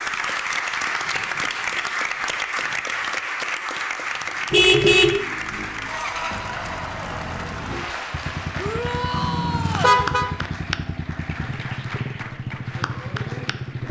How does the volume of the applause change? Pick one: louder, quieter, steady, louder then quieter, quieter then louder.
quieter.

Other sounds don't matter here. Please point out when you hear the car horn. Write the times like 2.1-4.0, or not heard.
4.5-5.2, 9.2-10.2.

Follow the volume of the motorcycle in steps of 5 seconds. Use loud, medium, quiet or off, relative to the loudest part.
off, loud, loud.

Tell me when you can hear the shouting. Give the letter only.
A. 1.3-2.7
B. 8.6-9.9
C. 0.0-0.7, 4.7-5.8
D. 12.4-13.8
B.